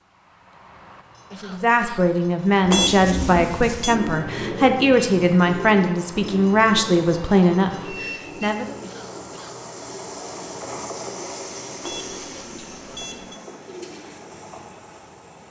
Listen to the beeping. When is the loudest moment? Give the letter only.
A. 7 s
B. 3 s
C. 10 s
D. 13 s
B.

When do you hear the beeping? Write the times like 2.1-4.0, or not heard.
2.7-4.0, 11.8-13.4.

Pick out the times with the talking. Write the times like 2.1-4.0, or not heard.
1.4-8.8.